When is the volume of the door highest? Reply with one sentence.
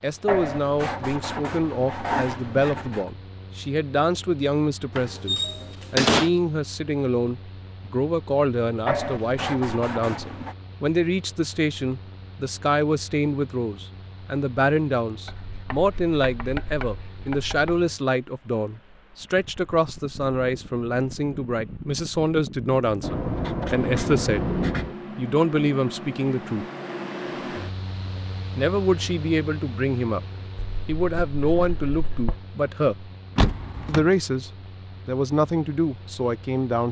The loudest moment of the door is at 6 seconds.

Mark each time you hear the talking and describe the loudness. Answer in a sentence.
The talking can be heard from 0.0 to 24.4 s, at a steady volume; briefly from 25.1 to 26.6 s; briefly from 28.6 to 30.2 s; briefly from 30.9 to 33.1 s; and briefly from 33.9 to 36.8 s.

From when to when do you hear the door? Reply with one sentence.
The door can be heard from 5.0 to 6.3 s and from 33.4 to 34.1 s.